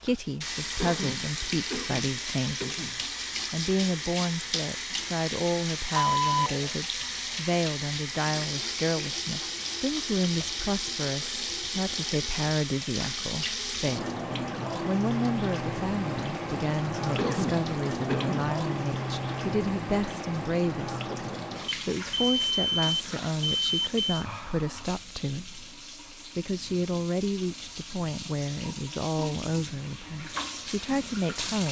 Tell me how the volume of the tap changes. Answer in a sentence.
The loudness of the tap goes down.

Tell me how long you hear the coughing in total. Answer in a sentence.
You can hear the coughing for 4 seconds altogether.